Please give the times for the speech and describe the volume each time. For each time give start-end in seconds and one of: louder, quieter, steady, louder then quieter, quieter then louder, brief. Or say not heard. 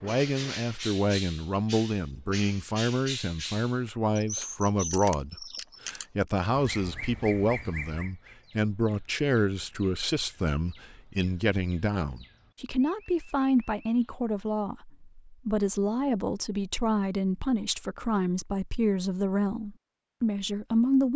0.0-21.1 steady.